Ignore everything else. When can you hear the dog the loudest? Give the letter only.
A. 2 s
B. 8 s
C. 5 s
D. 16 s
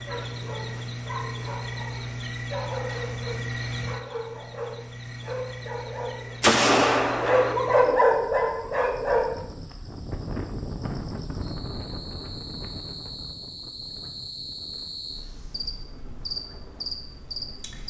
B.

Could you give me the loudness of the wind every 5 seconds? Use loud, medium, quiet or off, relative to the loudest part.
off, medium, loud, quiet.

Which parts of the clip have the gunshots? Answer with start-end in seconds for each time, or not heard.
6.4-7.5.